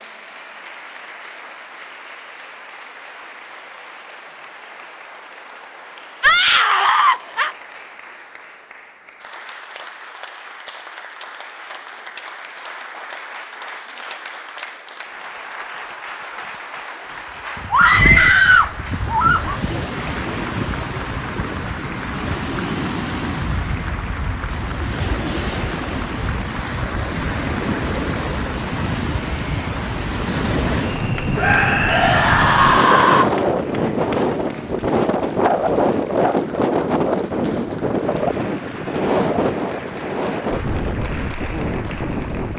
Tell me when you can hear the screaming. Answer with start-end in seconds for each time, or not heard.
6.2-7.5, 17.7-19.6, 31.4-33.2.